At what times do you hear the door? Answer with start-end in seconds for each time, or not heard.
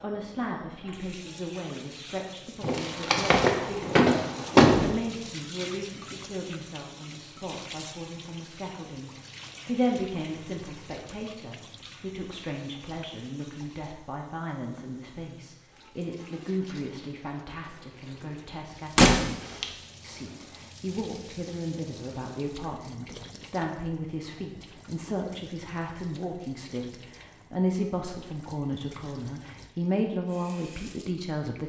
2.6-5.0, 18.9-19.6.